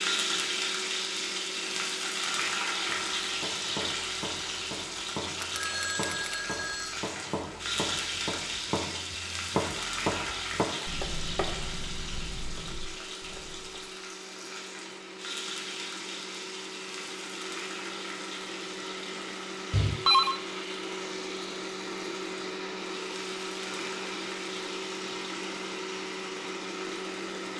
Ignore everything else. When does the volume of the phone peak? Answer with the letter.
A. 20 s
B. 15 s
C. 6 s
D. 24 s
A.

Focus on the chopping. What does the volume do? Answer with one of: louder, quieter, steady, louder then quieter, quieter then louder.
louder then quieter.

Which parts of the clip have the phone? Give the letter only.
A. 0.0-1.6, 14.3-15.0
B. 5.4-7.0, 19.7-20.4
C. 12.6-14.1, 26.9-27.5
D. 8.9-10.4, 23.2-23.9
B.